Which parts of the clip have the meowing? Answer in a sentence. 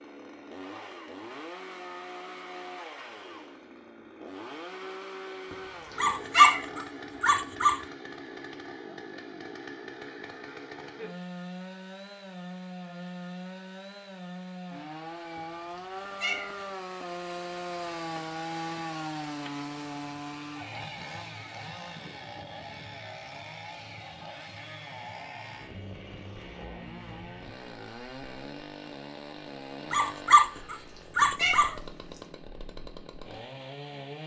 You can hear the meowing from 5.5 to 6.7 s, from 15.3 to 16.6 s and from 30.6 to 31.8 s.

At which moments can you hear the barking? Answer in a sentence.
You can hear the barking from 6.0 to 7.8 s and from 29.9 to 31.7 s.